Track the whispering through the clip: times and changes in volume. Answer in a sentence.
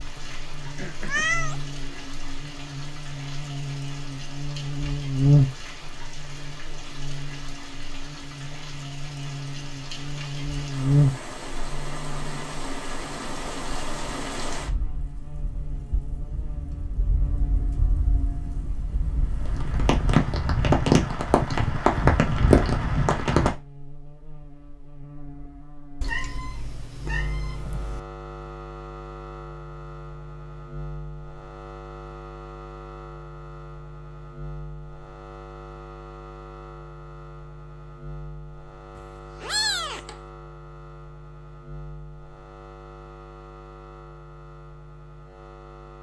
The whispering can't be heard in this clip.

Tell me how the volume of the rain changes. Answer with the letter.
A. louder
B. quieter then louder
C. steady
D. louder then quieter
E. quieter
A.